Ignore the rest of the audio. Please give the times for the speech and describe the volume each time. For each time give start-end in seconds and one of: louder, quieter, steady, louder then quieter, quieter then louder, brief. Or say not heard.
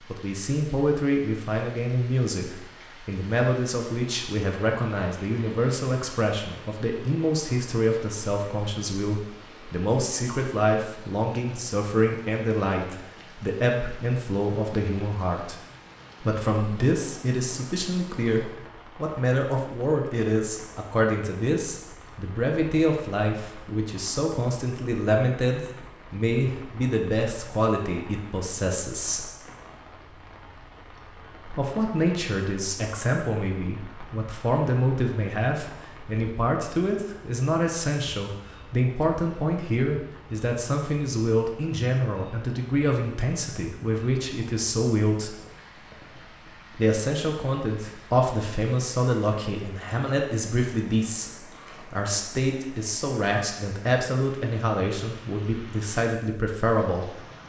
0.1-15.6 steady
16.2-29.3 steady
31.4-45.4 steady
46.8-57.1 steady.